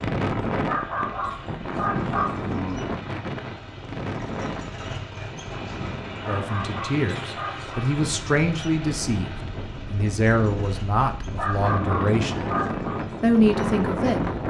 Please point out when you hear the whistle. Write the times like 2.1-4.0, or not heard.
not heard.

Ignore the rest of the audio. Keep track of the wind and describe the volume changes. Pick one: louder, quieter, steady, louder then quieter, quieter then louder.
quieter then louder.